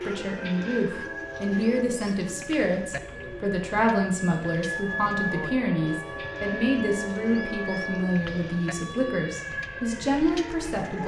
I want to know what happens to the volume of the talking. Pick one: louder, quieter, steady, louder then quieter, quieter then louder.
steady.